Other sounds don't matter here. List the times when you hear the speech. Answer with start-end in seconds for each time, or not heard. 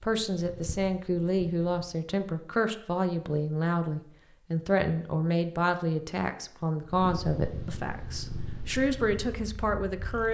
0.0-10.2.